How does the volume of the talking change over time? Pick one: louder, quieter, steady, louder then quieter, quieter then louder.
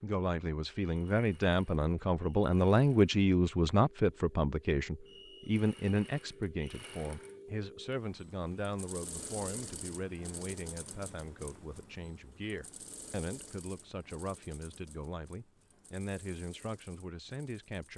quieter.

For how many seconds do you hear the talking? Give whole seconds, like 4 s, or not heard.
18 s.